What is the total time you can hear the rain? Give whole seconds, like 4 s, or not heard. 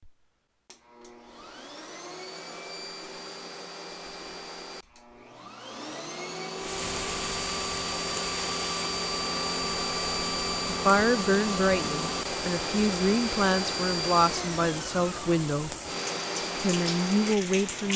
11 s.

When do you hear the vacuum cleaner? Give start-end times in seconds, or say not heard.
0.0-17.9.